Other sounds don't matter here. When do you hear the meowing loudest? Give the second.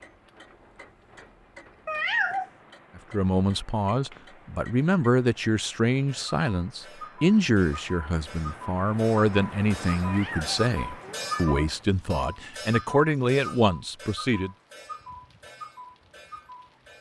2 s.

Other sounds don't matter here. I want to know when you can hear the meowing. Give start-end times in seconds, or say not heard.
1.9-2.5, 10.0-11.7.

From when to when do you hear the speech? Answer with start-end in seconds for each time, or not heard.
3.0-14.5.